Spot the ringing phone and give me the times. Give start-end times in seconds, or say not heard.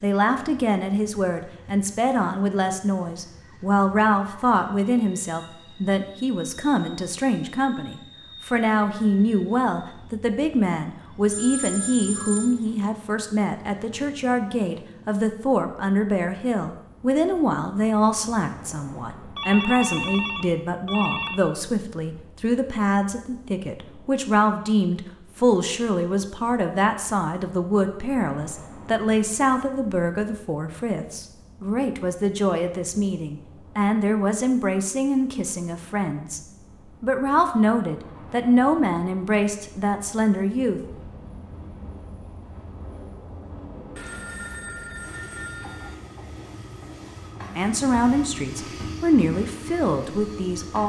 11.3-12.6, 19.4-21.4, 44.0-46.0.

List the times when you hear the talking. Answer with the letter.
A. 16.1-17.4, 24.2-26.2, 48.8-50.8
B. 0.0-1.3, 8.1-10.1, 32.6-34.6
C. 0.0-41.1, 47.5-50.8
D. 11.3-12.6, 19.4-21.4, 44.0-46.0
C.